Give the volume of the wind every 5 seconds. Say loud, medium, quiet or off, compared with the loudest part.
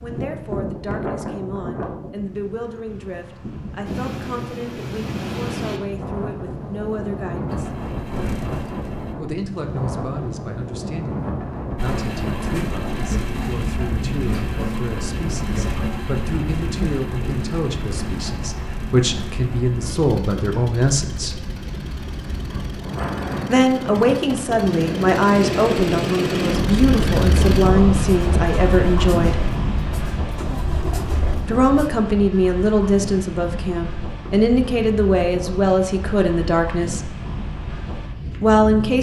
medium, medium, medium, medium, medium, loud, medium, medium.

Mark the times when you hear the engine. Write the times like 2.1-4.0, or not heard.
7.5-9.2, 11.8-31.9.